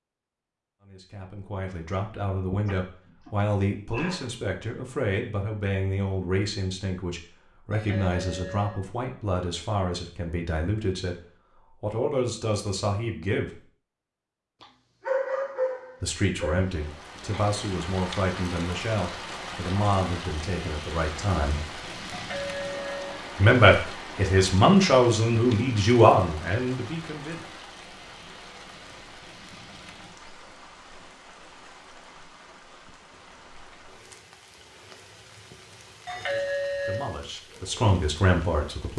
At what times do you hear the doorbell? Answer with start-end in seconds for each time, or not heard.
7.7-8.8, 22.1-23.2, 36.0-37.1.